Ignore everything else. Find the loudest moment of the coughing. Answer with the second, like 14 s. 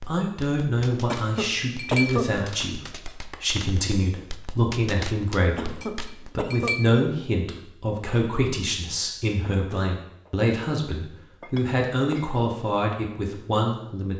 2 s.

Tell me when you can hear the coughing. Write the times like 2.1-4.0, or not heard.
1.1-2.3, 5.5-6.8, 9.4-10.3.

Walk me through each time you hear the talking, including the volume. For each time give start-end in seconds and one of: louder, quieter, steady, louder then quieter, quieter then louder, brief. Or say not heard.
0.1-14.1 steady.